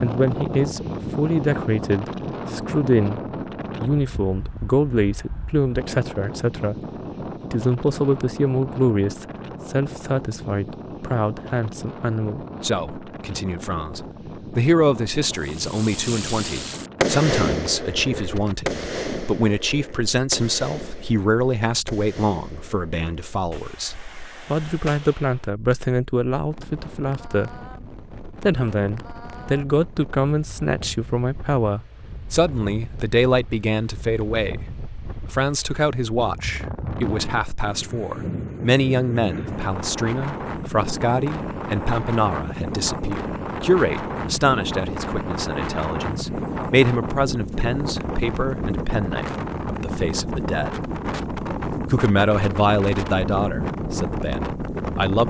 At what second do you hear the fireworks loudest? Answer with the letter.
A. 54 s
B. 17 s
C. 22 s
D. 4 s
B.